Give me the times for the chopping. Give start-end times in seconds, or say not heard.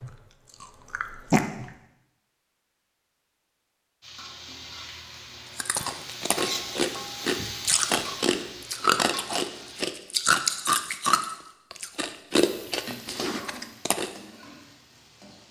not heard.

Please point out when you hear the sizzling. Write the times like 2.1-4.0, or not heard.
4.0-9.9, 12.4-15.4.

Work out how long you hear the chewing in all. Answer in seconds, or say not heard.
10 s.